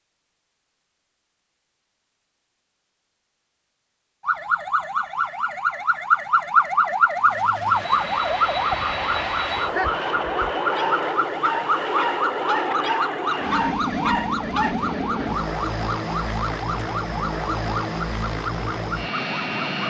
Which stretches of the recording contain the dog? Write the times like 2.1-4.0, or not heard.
9.6-14.8.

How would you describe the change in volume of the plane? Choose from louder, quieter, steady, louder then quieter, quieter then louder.
steady.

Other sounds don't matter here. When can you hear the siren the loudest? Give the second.
7 s.